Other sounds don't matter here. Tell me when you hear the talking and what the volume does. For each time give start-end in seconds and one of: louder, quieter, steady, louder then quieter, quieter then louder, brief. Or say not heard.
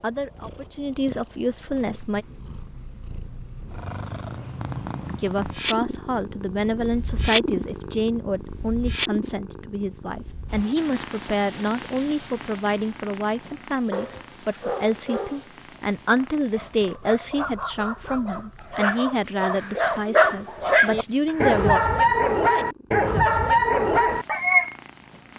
0.0-2.2 brief
5.0-21.8 steady.